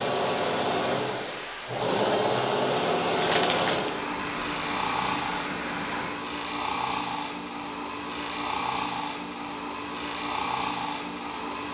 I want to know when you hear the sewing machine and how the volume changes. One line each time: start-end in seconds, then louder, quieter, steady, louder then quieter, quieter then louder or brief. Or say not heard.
0.0-11.6 steady.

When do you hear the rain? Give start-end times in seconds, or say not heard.
0.0-6.2.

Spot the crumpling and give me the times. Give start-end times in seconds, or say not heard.
3.1-4.0.